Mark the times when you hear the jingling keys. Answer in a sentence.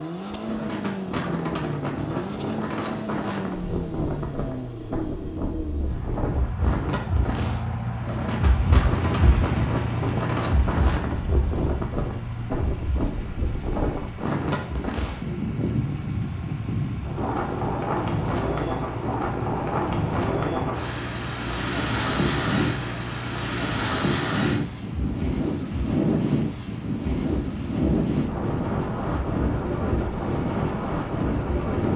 You can't hear the jingling keys here.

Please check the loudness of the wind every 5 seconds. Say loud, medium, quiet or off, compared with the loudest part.
medium, medium, loud, loud, loud, loud, loud.